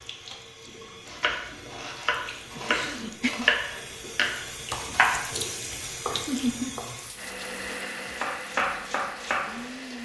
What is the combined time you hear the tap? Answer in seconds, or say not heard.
10 s.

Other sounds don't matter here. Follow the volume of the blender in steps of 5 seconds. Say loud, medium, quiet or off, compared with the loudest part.
off, loud.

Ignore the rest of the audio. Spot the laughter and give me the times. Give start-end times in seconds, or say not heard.
2.5-3.5, 6.1-6.8.